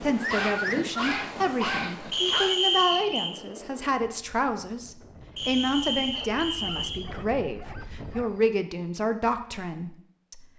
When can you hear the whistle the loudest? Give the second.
3 s.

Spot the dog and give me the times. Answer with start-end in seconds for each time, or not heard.
0.2-2.5, 6.1-8.6.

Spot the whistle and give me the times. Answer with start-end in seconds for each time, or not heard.
2.1-3.3, 5.3-7.0.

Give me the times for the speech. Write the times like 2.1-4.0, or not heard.
0.0-10.4.